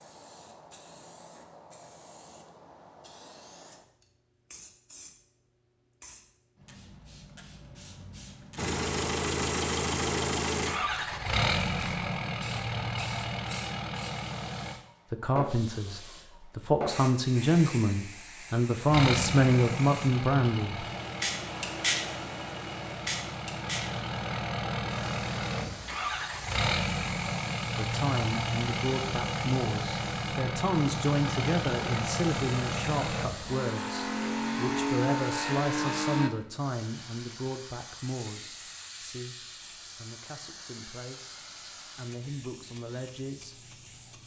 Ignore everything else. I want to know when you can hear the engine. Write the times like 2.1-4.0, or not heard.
8.6-14.8, 18.9-36.3.